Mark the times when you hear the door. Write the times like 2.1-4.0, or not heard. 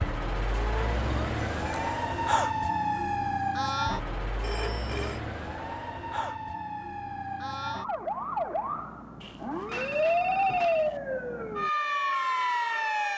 not heard.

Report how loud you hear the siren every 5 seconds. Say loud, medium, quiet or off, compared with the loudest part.
loud, medium, loud.